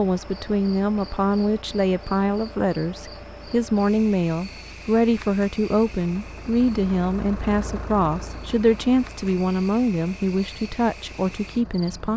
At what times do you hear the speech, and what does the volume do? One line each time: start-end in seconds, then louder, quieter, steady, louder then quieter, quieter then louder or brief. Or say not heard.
0.0-12.1 steady.